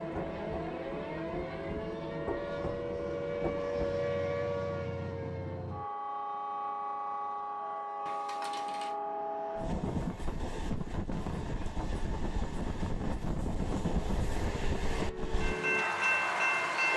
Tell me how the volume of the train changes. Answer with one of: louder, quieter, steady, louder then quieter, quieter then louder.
louder.